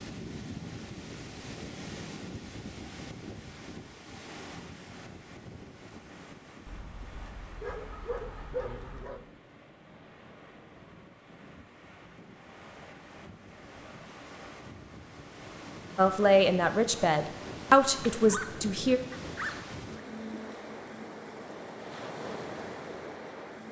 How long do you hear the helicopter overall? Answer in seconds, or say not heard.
not heard.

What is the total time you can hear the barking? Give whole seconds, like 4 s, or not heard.
4 s.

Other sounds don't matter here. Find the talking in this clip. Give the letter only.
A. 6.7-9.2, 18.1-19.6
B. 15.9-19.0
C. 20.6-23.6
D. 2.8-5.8
B.